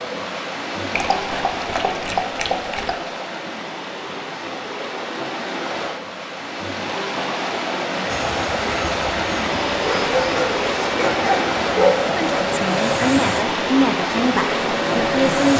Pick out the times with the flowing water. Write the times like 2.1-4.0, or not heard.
0.0-15.5.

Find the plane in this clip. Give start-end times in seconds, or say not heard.
8.1-15.5.